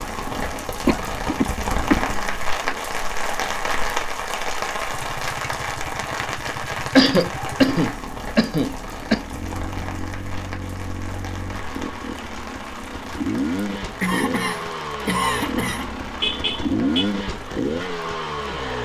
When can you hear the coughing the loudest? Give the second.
7 s.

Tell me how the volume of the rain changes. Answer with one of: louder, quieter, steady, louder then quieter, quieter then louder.
quieter.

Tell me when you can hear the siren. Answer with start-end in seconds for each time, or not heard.
not heard.